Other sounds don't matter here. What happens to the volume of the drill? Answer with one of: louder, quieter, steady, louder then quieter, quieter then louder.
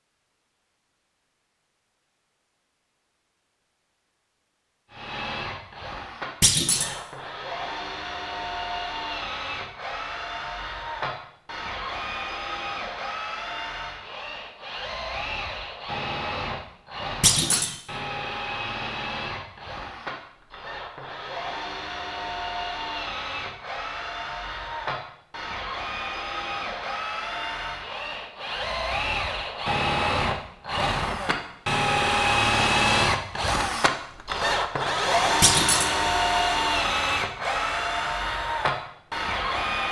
louder.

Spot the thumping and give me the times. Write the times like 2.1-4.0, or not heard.
6.4-7.0, 17.2-17.8, 35.4-36.0.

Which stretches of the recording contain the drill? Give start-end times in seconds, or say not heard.
4.9-39.8.